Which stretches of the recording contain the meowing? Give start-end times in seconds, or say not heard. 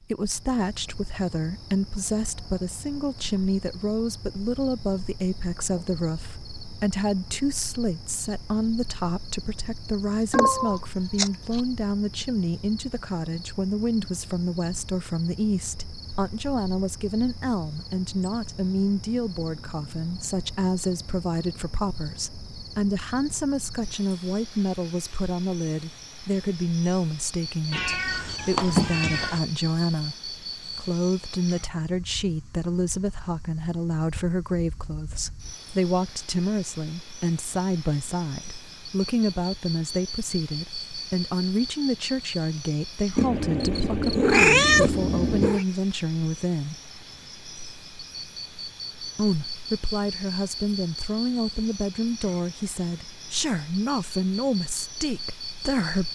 10.3-11.6, 27.7-29.4, 43.1-45.6.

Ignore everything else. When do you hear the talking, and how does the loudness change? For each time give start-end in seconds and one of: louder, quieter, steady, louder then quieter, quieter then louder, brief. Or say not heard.
0.0-46.8 steady
49.1-56.1 steady.